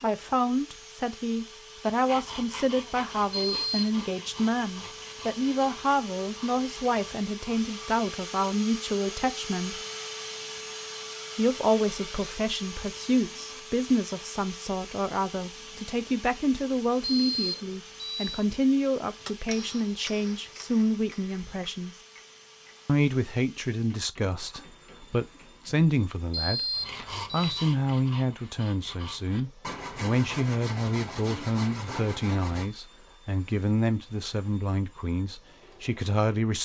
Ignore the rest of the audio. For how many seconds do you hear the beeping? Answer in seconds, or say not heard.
3 s.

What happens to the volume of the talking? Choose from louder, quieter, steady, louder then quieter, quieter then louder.
steady.